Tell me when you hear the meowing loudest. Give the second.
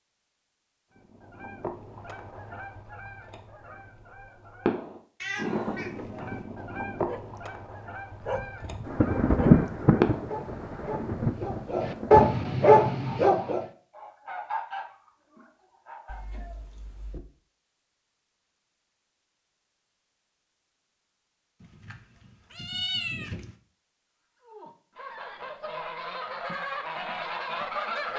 23 s.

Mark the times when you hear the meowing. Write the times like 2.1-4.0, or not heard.
5.2-6.4, 16.1-17.2, 21.6-23.5.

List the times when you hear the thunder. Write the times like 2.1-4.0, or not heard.
8.8-12.4.